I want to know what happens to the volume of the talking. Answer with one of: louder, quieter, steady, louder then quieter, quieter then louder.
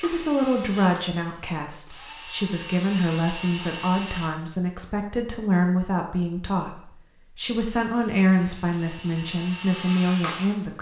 steady.